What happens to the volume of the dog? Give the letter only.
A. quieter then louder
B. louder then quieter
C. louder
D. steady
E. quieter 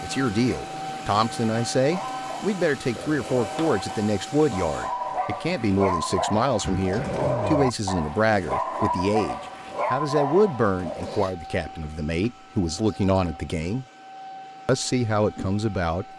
C.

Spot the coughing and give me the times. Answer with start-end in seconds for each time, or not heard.
6.6-7.6.